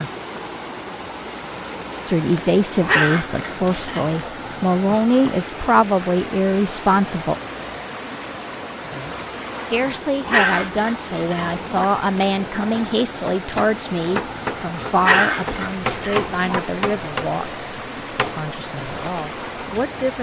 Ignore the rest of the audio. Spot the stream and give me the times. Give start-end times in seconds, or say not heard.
0.0-20.1.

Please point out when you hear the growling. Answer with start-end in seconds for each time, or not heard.
2.8-4.2, 10.2-11.8, 14.9-16.6.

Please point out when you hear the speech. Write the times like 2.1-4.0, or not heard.
2.0-7.3, 9.7-20.1.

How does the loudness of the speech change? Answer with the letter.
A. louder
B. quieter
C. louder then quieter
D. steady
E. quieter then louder
B.